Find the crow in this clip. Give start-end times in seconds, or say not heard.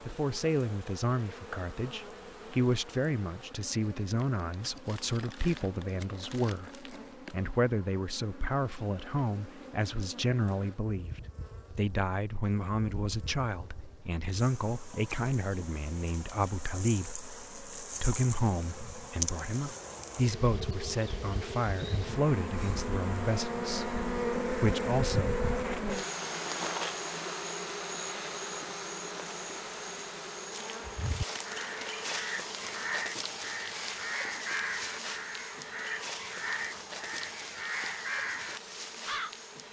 30.8-39.4.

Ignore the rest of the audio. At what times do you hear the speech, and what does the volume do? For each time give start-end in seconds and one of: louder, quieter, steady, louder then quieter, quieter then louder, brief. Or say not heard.
0.1-25.4 steady.